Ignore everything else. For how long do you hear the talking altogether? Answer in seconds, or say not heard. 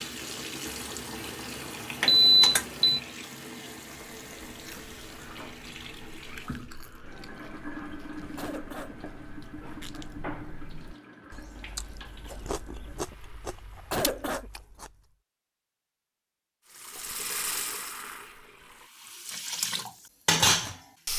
not heard.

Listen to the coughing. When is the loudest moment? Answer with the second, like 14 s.
14 s.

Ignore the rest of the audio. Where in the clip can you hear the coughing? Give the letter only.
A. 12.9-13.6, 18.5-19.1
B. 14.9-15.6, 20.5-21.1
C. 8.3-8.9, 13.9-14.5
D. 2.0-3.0
C.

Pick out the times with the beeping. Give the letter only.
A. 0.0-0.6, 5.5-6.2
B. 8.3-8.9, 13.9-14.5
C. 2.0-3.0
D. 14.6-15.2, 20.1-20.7
C.